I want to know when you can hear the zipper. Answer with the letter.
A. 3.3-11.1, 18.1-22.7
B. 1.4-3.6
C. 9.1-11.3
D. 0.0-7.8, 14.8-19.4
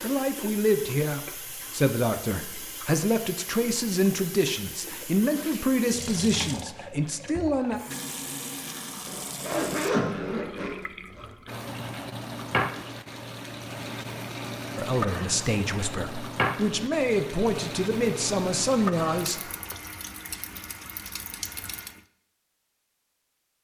C.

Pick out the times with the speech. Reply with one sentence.
The speech can be heard from 0.0 to 7.8 s and from 14.8 to 19.4 s.